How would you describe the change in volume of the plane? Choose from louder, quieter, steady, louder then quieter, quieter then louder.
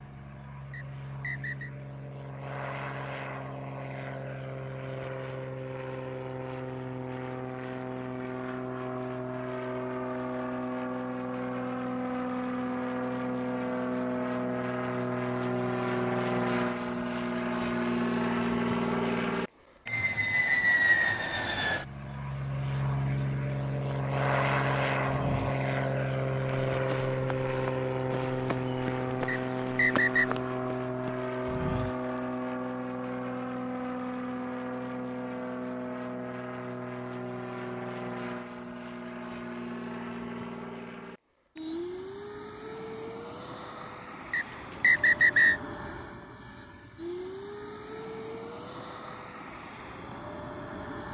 louder then quieter.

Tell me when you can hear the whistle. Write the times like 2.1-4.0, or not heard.
0.7-1.7, 29.2-30.2, 44.3-45.6.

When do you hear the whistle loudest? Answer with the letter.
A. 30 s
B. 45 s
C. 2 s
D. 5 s
B.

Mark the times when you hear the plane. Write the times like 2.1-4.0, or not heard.
0.0-51.0.